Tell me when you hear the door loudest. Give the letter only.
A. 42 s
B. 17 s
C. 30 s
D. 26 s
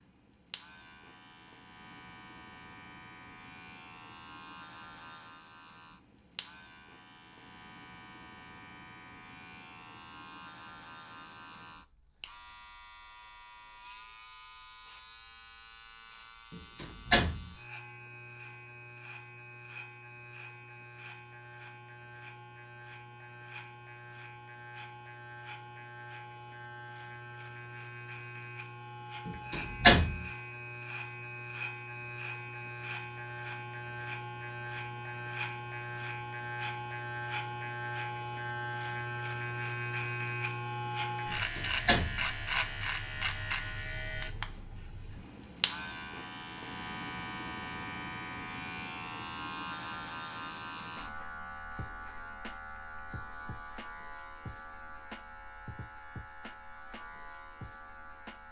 C.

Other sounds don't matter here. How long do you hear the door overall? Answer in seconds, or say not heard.
3 s.